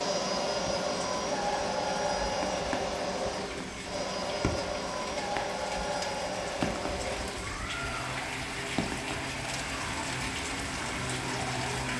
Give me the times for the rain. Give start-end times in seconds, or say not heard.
0.0-11.9.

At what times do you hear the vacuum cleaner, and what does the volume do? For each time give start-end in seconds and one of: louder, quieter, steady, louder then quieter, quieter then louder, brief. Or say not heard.
0.0-11.9 quieter.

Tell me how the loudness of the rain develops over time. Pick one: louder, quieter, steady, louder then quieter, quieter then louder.
louder.